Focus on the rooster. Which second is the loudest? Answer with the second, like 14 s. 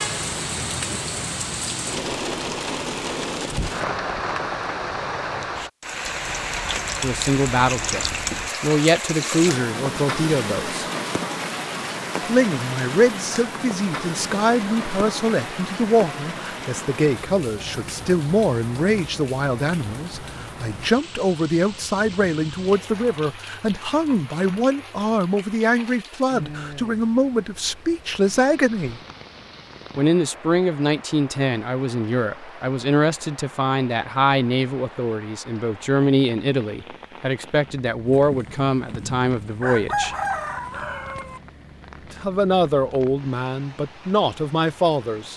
40 s.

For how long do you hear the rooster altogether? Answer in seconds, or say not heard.
3 s.